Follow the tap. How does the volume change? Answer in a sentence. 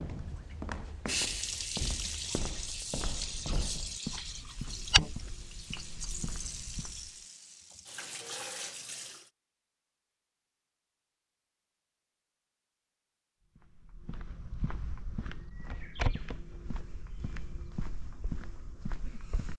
The loudness of the tap goes down.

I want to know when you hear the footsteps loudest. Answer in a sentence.
The volume of the footsteps peaks at 5 seconds.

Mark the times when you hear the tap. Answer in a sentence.
You can hear the tap from 0.1 to 9.3 s.